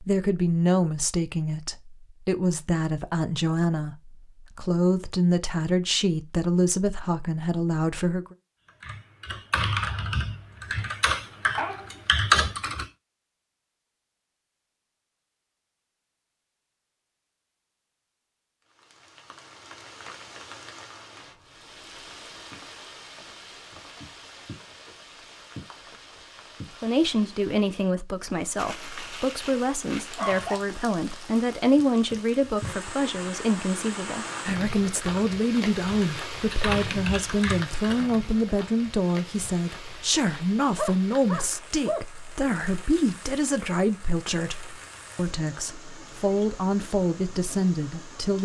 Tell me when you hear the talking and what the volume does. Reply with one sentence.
The talking can be heard from 0.0 to 8.3 s, at a steady volume; and from 26.8 to 48.3 s, at a steady volume.